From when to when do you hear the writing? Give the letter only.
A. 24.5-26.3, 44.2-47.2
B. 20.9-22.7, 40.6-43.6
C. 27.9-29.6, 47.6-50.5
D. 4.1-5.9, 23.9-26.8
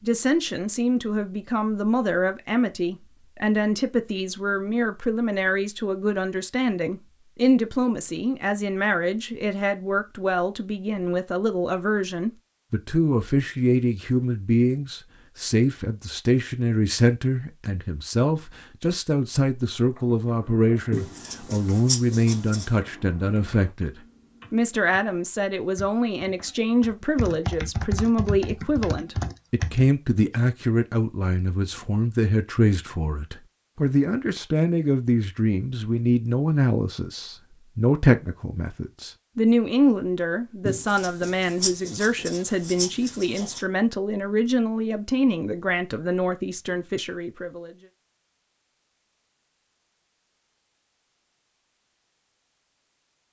B.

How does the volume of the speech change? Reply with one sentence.
The loudness of the speech stays about the same.